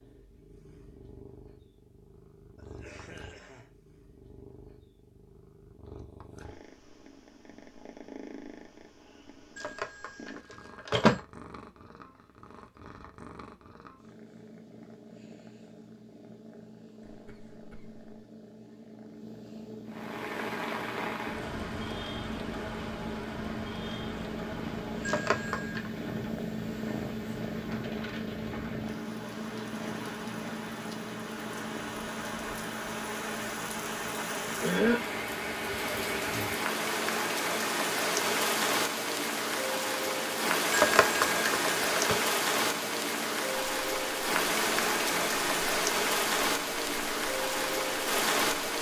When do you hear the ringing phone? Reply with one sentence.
You can hear the ringing phone from 9.6 to 11.2 s, from 25.0 to 25.9 s and from 40.7 to 42.1 s.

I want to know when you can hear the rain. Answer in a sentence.
The rain can be heard from 19.9 to 48.7 s.